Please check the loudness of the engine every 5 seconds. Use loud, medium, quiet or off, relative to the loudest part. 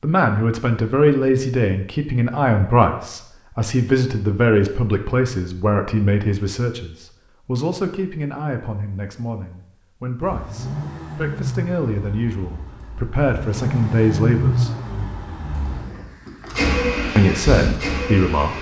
off, off, loud, loud.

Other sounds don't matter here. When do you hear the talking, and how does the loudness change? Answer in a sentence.
You can hear the talking from 0.0 to 14.7 s, getting quieter then louder; and briefly from 17.1 to 18.5 s.